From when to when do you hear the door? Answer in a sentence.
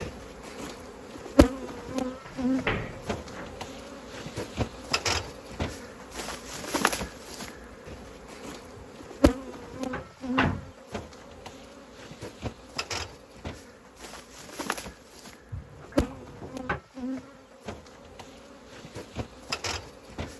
You can hear the door from 2.2 to 3.5 s, from 8.8 to 9.3 s, from 9.9 to 10.7 s and from 15.5 to 16.8 s.